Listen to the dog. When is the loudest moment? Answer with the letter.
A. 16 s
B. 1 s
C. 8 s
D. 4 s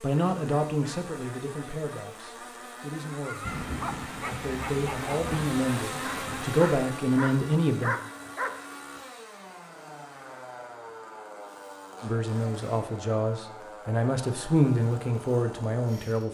C.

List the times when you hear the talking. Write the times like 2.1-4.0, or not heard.
0.0-3.5, 4.2-8.0, 12.0-16.2.